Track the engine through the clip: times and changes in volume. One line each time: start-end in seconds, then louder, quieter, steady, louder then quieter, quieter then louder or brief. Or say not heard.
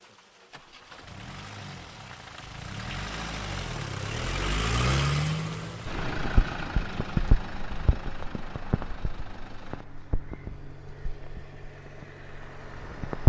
0.0-13.2 louder then quieter.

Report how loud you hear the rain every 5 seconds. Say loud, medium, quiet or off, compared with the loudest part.
off, loud, loud.